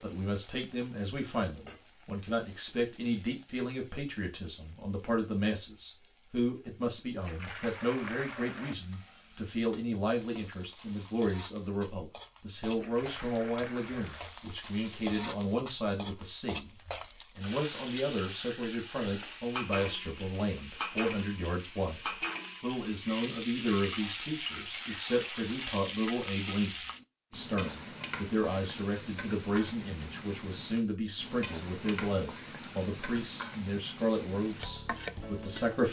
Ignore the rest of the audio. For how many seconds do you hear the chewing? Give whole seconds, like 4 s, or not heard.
not heard.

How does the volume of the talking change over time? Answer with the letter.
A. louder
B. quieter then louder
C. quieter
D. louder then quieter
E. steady
E.